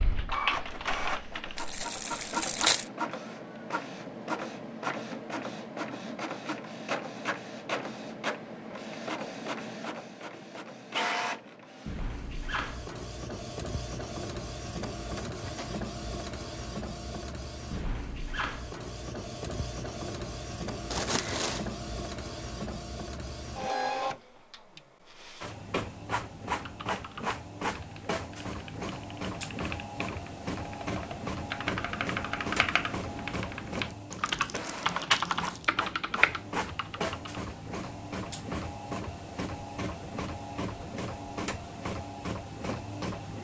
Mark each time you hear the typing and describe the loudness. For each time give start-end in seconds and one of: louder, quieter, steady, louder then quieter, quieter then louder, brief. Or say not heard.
0.0-1.8 brief
26.5-37.4 louder.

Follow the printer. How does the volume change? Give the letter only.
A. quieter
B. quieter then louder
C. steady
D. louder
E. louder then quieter
C.